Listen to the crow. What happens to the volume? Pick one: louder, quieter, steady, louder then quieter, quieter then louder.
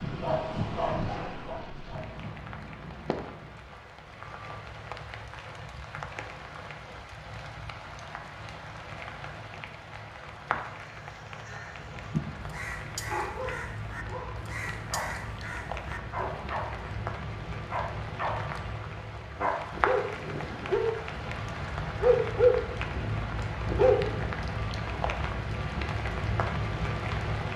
louder then quieter.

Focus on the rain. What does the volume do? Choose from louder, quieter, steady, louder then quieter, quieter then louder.
louder.